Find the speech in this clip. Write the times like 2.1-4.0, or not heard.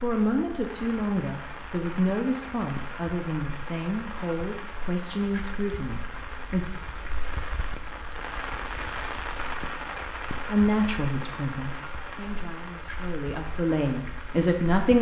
0.0-6.7, 10.5-14.9.